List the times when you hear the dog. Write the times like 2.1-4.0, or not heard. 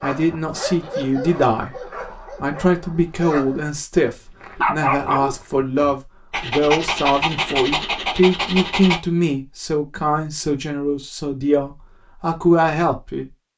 0.0-3.6, 4.4-9.0.